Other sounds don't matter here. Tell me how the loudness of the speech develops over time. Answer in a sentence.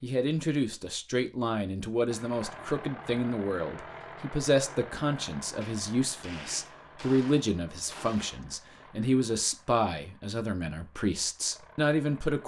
The volume of the speech stays about the same.